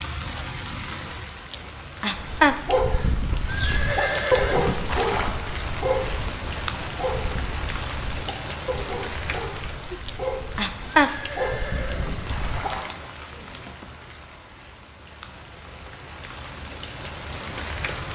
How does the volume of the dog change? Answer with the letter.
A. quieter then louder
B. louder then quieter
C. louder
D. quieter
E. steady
D.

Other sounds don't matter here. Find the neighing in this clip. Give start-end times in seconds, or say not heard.
3.5-5.3, 11.0-12.9.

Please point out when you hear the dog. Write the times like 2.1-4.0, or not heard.
2.1-12.7.